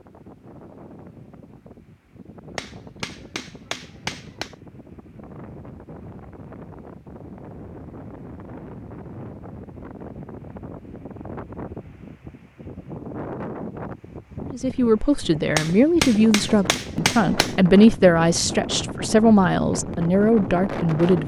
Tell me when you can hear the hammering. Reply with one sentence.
The hammering can be heard from 2.5 to 4.5 s and from 15.6 to 17.6 s.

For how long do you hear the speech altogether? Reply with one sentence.
The speech can be heard for 7 seconds in total.